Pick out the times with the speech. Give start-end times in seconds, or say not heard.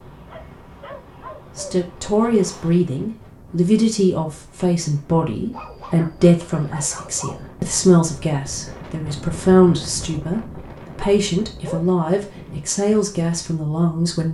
1.6-14.2.